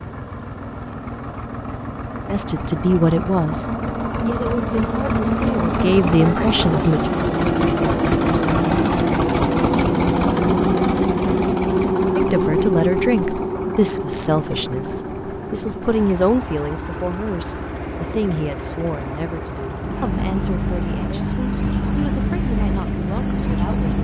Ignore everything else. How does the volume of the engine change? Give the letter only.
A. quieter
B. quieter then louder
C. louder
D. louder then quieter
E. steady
D.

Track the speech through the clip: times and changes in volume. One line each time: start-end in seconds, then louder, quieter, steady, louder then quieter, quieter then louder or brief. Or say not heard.
2.3-7.1 quieter then louder
12.2-23.9 quieter.